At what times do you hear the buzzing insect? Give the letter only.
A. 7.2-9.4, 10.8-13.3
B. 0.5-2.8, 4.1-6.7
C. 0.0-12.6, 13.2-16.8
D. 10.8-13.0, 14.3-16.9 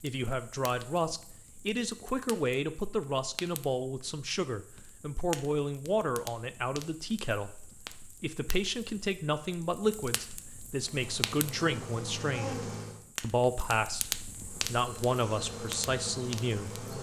D.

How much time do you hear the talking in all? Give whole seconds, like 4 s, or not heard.
16 s.